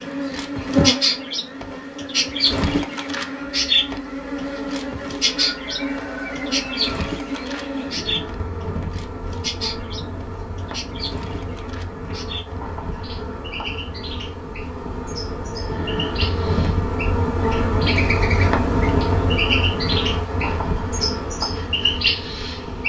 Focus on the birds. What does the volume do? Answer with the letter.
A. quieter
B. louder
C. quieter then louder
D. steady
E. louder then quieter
C.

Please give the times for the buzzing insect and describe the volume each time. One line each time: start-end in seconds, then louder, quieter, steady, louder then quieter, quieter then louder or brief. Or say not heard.
0.0-22.8 quieter then louder.